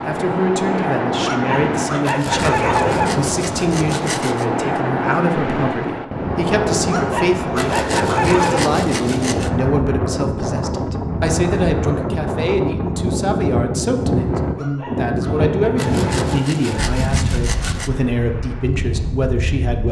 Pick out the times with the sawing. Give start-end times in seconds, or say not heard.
2.0-4.5, 7.5-9.5, 15.8-17.9.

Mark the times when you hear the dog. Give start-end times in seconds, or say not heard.
1.2-3.1, 6.9-8.7, 14.6-17.1.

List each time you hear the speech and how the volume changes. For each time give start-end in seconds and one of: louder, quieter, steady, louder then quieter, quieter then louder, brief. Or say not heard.
0.1-19.8 steady.